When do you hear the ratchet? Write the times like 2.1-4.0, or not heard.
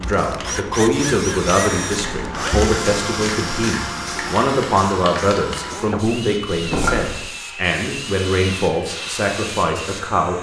not heard.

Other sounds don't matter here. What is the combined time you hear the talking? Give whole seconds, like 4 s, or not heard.
10 s.